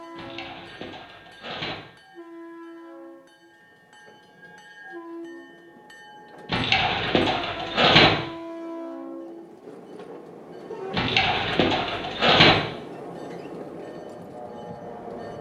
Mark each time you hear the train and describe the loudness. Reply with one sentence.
You can hear the train from 0.0 to 15.3 s, getting louder.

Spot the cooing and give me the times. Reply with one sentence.
The cooing can be heard from 0.1 to 1.8 s, from 6.5 to 8.1 s and from 10.9 to 12.6 s.